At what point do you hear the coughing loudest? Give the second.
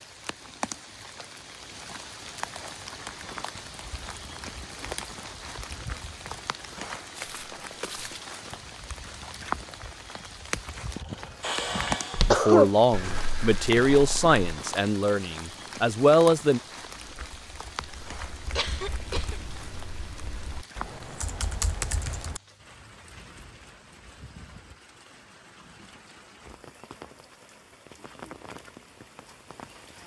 12 s.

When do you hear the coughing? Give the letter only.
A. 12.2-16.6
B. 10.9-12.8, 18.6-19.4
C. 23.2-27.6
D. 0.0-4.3
B.